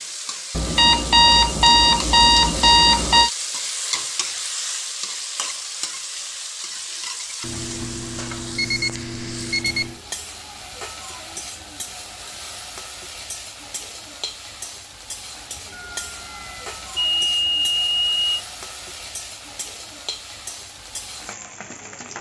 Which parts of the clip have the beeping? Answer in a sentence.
You can hear the beeping from 0.6 to 3.3 s, from 7.4 to 9.9 s and from 15.7 to 18.4 s.